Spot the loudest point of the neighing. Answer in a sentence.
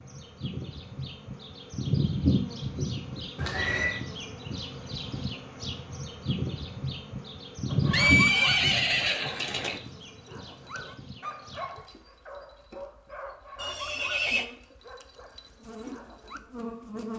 The loudest moment of the neighing is at 8 seconds.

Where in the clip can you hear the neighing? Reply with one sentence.
You can hear the neighing from 3.4 to 4.0 s, from 7.9 to 9.8 s and from 13.6 to 14.4 s.